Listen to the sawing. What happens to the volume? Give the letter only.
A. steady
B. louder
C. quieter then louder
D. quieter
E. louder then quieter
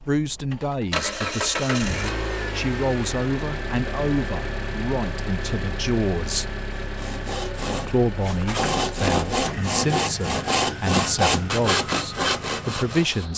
B.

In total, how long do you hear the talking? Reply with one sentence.
You can hear the talking for 12 seconds altogether.